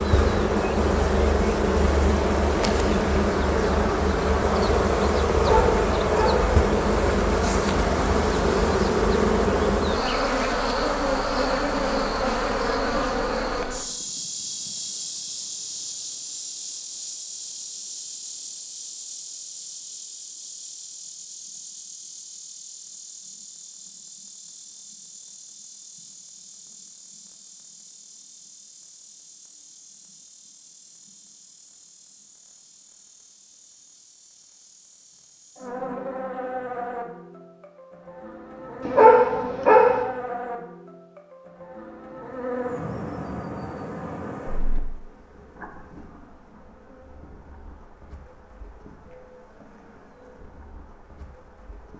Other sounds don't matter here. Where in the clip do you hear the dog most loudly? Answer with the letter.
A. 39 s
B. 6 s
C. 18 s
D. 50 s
A.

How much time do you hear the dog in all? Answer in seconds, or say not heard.
2 s.